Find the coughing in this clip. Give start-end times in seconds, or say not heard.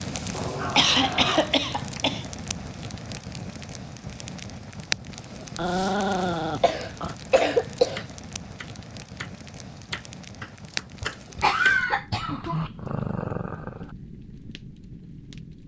0.6-2.7, 6.2-8.1, 11.0-12.6.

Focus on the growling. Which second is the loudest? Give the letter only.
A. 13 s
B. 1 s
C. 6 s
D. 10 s
C.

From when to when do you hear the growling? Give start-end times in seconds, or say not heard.
0.3-1.9, 5.3-7.2, 12.2-13.9.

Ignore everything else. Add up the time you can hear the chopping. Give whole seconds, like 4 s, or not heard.
5 s.